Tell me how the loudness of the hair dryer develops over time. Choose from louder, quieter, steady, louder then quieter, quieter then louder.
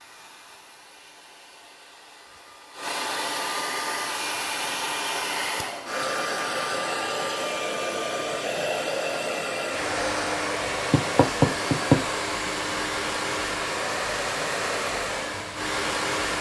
louder.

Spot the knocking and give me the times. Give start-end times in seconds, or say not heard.
10.9-12.1.